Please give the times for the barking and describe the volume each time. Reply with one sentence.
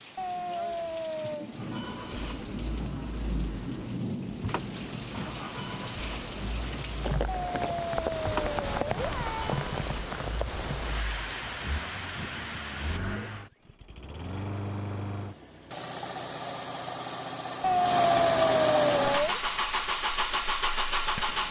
The barking can't be heard in this clip.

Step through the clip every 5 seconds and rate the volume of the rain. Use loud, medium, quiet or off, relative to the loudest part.
loud, loud, loud, off, off.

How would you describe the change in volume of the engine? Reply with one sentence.
The volume of the engine goes up.